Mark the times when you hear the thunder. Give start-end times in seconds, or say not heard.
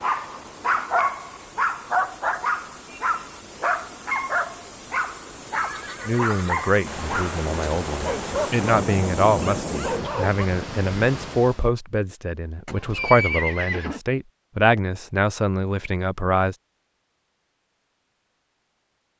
6.8-10.1.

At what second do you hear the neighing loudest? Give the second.
13 s.